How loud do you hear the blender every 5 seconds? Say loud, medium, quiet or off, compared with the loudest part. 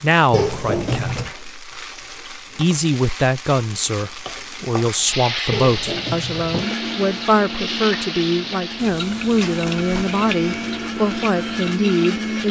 off, medium, loud.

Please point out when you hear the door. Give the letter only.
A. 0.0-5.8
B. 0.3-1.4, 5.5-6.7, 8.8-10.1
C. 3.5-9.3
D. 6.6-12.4
B.